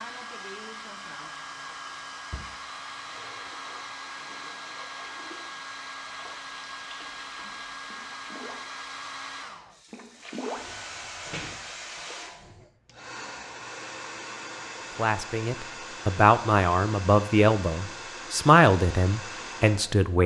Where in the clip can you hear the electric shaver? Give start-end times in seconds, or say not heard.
not heard.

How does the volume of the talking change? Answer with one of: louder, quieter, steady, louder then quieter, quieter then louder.
louder then quieter.